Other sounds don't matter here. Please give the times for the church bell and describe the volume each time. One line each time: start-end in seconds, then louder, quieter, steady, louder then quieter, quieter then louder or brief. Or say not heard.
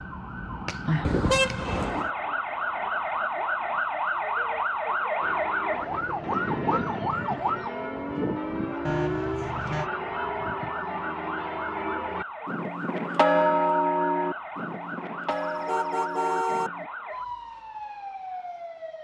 5.2-16.9 louder then quieter.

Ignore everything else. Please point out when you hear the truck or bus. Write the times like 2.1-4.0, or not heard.
not heard.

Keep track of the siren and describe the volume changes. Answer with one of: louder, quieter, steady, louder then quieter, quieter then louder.
quieter.